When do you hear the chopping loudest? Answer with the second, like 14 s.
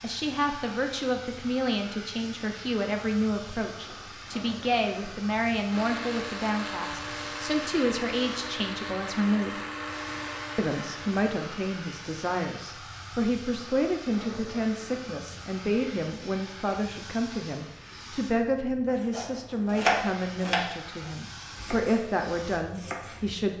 20 s.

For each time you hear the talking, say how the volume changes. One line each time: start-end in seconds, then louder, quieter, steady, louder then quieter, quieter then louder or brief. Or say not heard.
0.0-9.6 steady
10.6-23.5 steady.